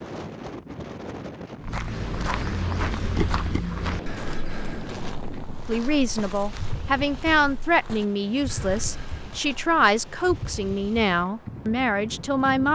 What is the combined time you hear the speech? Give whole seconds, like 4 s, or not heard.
7 s.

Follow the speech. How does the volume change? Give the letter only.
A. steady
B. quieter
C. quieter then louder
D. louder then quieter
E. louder
A.